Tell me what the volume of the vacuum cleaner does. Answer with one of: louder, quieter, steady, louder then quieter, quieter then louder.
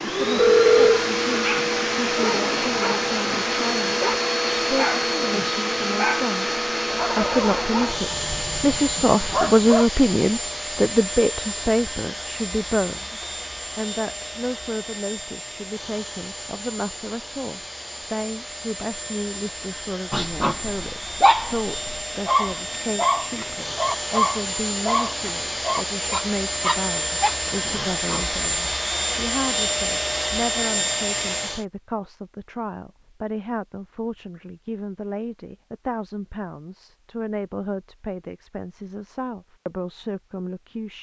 quieter then louder.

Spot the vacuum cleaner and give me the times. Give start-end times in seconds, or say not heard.
0.0-31.6.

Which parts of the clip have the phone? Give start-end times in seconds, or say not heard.
0.3-1.0.